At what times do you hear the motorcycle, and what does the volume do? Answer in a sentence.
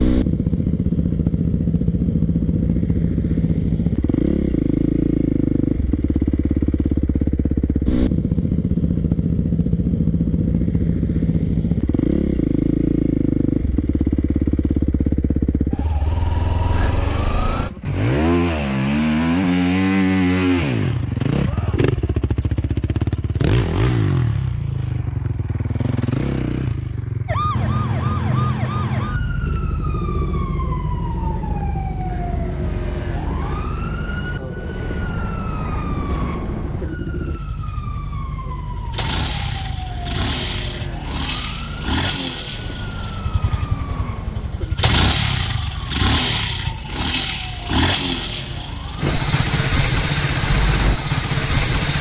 You can hear the motorcycle from 0.0 to 51.9 s, getting quieter then louder.